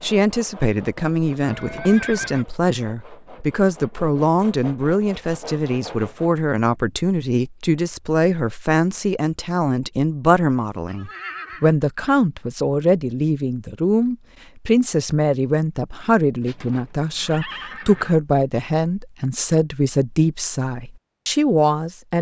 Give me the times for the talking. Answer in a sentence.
You can hear the talking from 0.0 to 22.1 s.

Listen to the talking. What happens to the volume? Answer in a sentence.
The volume of the talking stays about the same.